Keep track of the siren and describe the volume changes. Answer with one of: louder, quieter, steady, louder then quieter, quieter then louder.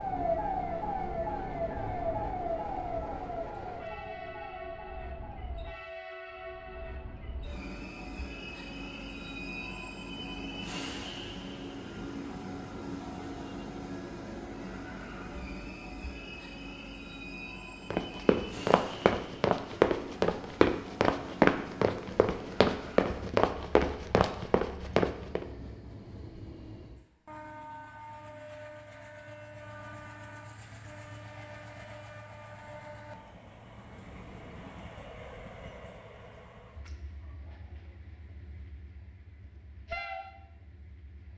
quieter.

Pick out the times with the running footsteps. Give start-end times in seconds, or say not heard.
17.9-25.4.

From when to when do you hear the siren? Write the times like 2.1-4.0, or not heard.
0.0-5.8.